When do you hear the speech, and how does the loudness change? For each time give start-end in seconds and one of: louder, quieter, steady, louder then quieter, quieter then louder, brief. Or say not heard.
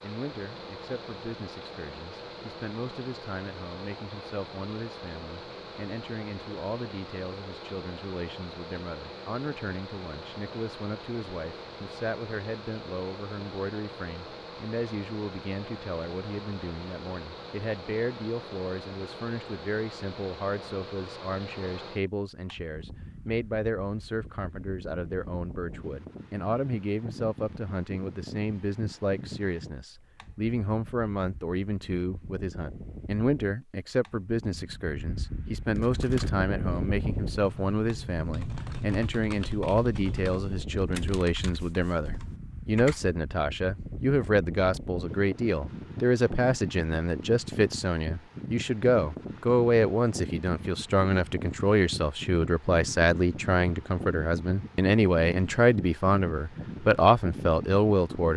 0.0-58.3 louder.